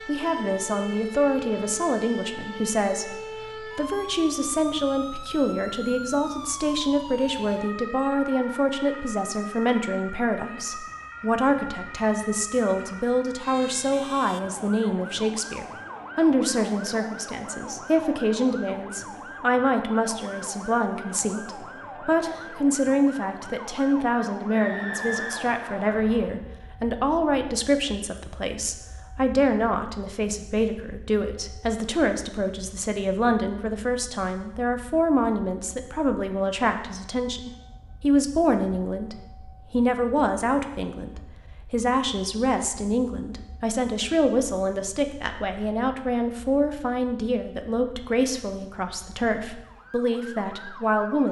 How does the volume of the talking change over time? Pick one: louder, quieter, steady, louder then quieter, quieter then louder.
steady.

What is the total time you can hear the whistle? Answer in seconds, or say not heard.
2 s.